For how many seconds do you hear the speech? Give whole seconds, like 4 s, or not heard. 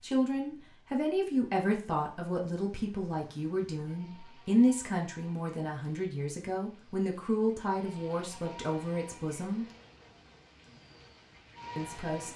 10 s.